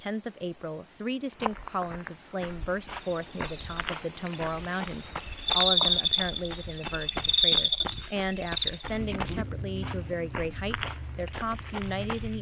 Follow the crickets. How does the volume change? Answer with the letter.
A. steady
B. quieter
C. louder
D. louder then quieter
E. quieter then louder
D.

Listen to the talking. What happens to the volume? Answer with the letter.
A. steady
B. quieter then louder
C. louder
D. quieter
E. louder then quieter
A.